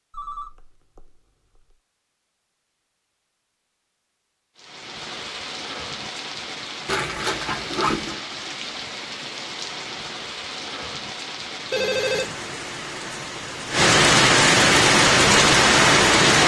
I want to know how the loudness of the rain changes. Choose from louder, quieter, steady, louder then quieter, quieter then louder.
louder.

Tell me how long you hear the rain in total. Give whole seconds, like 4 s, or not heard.
12 s.